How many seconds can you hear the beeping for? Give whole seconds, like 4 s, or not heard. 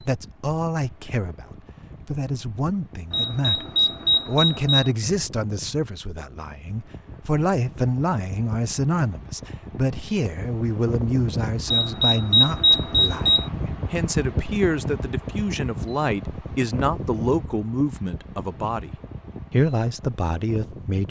4 s.